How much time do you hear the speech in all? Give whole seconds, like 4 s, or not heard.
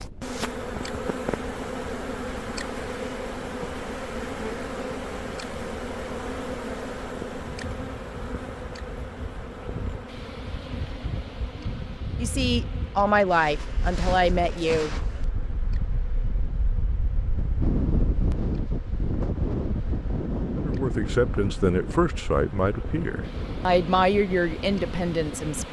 8 s.